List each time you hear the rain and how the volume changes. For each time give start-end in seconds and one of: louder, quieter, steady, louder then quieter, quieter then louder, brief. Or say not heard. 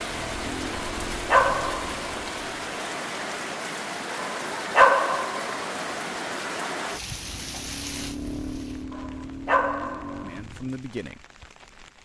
0.0-12.0 quieter.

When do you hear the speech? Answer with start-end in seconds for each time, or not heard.
10.2-11.2.